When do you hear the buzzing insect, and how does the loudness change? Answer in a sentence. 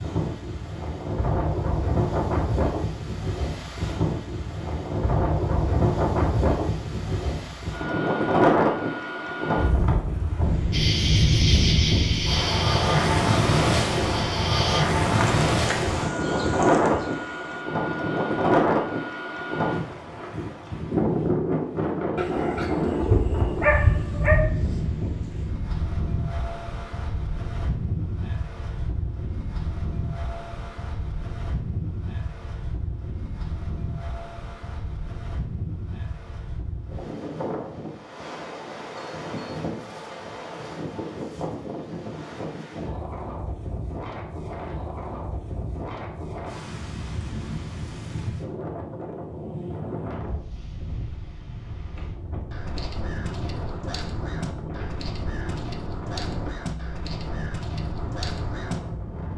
You can hear the buzzing insect from 10.7 to 17.6 s, getting quieter.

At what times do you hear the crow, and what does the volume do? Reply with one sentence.
The crow can be heard from 52.5 to 58.8 s, at a steady volume.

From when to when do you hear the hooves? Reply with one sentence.
The hooves can't be heard in this clip.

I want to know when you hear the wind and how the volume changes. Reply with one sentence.
You can hear the wind from 0.0 to 59.3 s, getting quieter.